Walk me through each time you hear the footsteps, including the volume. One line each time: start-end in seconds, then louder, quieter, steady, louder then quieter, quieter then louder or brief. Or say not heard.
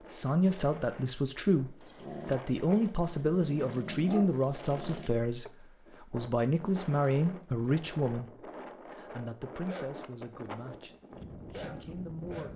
not heard.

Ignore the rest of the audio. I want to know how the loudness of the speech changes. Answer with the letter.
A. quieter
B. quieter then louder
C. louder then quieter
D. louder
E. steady
A.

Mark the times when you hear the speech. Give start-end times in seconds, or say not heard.
0.1-12.5.